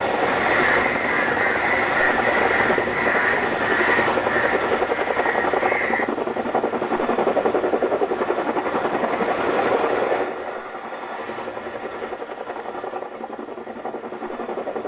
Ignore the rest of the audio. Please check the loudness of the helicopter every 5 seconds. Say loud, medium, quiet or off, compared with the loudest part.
loud, loud, medium.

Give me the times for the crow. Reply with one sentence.
The crow can be heard from 0.2 to 6.1 s.